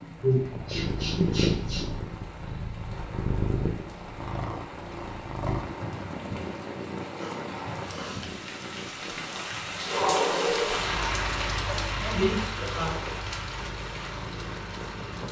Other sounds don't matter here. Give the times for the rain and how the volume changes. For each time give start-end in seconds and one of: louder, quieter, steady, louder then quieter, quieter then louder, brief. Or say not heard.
0.0-15.2 louder then quieter.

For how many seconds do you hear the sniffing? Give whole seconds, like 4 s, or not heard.
4 s.